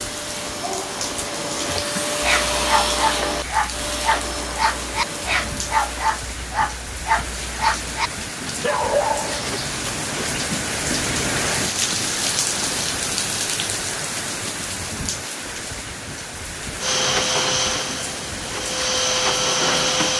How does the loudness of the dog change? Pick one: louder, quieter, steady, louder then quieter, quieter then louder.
steady.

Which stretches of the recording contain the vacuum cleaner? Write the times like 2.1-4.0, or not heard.
0.0-6.1, 16.8-20.1.